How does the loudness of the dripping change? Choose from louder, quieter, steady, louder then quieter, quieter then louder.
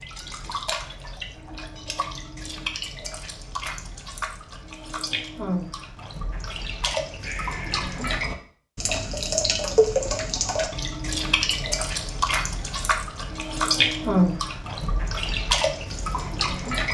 louder.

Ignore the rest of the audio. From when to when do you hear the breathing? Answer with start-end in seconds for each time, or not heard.
7.2-7.9.